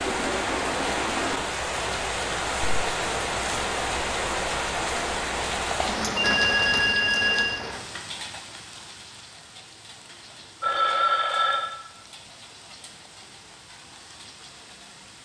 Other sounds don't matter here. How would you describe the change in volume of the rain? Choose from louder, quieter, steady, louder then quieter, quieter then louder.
quieter.